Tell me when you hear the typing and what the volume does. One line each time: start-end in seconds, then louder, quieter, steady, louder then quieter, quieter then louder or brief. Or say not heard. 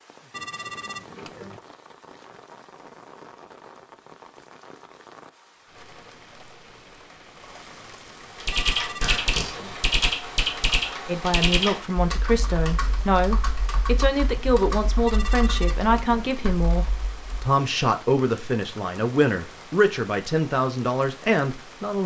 8.3-17.2 quieter.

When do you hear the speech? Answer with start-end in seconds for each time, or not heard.
11.1-22.0.